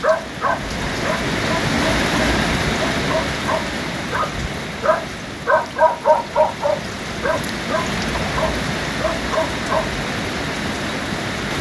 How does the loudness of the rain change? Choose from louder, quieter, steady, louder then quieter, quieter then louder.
quieter then louder.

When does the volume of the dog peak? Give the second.
6 s.